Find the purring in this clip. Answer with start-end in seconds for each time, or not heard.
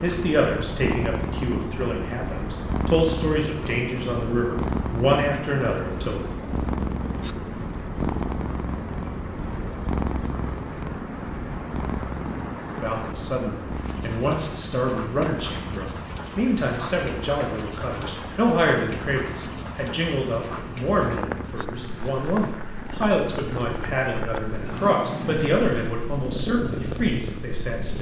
0.0-27.9.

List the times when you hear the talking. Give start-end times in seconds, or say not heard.
0.0-6.2, 12.7-27.9.